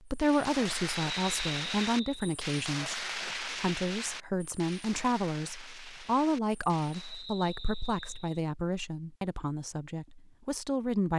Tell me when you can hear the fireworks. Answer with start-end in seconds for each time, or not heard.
0.1-7.2.